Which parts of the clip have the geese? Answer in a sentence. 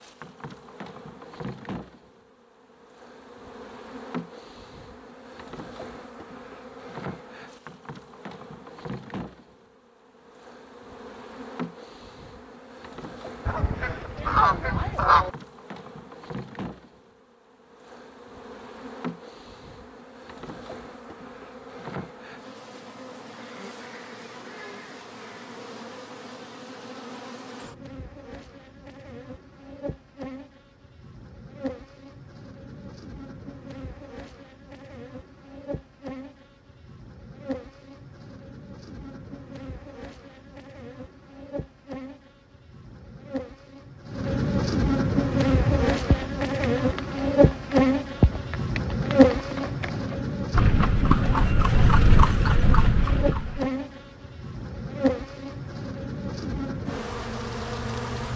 The geese can be heard from 13.4 to 15.3 s.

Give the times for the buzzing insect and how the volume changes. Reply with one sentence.
The buzzing insect can be heard from 0.0 to 58.3 s, getting louder.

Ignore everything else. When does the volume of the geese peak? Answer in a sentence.
The volume of the geese peaks at 15 seconds.